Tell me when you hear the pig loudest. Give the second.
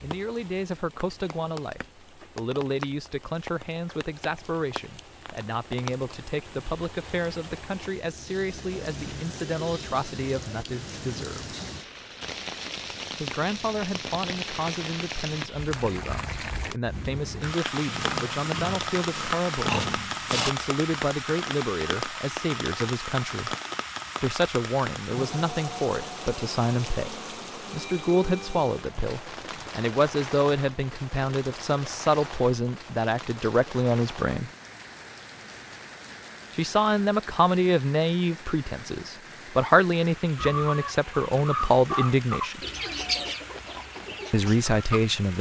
20 s.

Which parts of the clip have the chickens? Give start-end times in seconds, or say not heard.
40.4-45.1.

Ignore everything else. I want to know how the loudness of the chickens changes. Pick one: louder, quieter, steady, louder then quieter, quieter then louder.
louder then quieter.